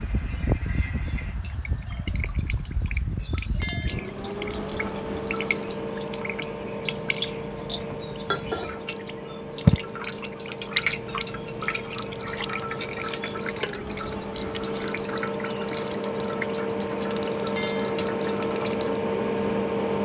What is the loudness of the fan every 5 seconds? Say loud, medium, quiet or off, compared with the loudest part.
medium, medium, medium, loud.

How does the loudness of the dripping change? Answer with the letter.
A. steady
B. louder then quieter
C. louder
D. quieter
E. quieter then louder
B.